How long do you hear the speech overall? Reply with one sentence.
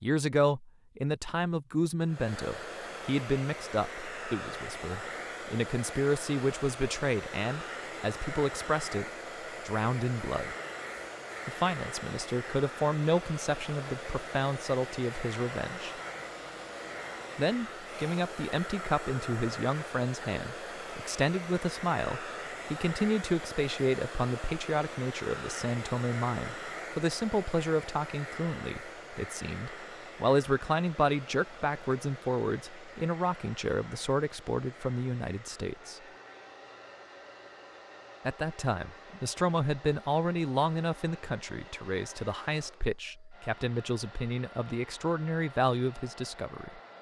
The speech can be heard for 42 seconds in total.